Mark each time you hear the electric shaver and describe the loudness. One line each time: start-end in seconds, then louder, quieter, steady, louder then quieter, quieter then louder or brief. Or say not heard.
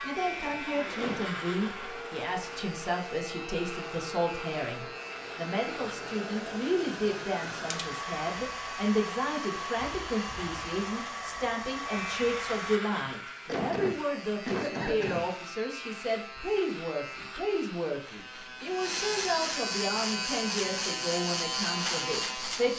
0.0-22.7 louder.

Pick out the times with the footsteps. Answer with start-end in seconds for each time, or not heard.
not heard.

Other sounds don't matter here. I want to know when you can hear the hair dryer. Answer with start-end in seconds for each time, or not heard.
0.0-12.8.